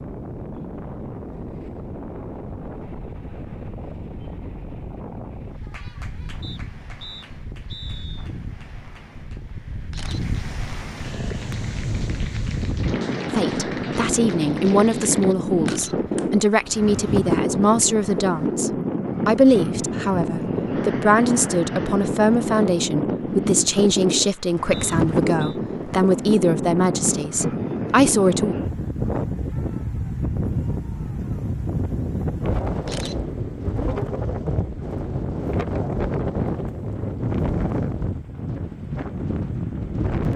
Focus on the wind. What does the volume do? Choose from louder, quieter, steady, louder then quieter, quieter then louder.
louder.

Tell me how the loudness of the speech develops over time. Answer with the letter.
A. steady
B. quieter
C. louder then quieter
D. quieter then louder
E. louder
A.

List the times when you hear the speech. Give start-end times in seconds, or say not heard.
13.3-28.6.